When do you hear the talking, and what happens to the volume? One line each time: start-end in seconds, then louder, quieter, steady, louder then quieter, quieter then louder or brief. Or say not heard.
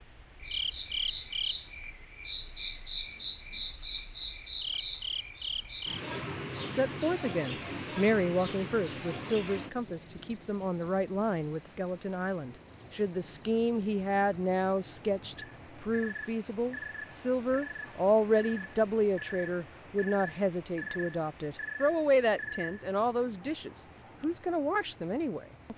6.7-25.7 steady.